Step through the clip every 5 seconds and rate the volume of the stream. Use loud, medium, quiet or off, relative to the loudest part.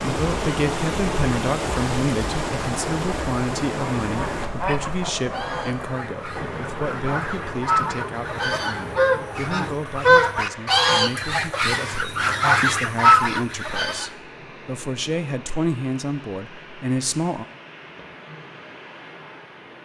loud, medium, quiet, quiet.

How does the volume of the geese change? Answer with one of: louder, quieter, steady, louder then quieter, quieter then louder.
louder.